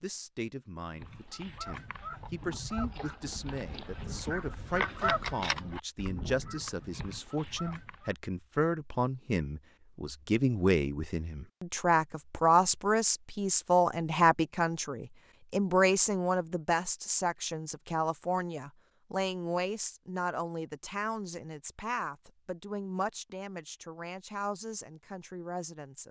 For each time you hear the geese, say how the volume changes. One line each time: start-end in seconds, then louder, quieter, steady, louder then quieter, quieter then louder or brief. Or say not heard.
0.9-8.2 louder then quieter.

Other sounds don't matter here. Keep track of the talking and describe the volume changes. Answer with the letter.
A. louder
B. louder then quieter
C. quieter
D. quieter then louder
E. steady
B.